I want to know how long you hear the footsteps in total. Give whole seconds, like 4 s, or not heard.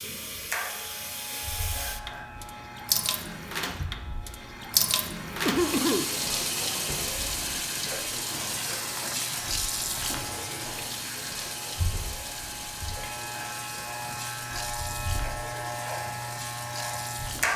not heard.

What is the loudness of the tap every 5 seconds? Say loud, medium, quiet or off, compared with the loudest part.
loud, loud, medium, medium.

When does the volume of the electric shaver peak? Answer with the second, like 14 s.
17 s.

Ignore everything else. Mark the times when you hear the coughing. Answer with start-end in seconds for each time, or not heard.
5.5-6.1.